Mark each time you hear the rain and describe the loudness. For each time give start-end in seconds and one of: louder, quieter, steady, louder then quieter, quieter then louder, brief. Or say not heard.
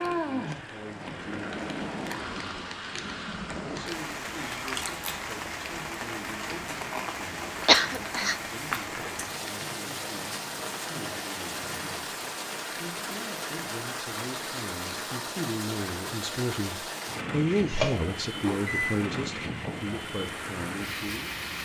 0.0-21.6 steady.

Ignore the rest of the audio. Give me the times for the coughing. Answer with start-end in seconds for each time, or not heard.
7.7-8.3.